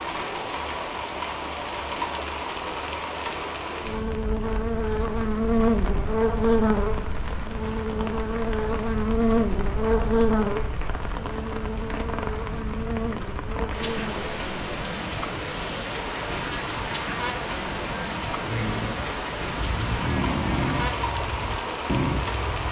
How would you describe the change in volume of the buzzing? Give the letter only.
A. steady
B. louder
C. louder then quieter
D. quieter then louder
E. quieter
E.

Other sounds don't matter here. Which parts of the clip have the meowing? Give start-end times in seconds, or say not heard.
not heard.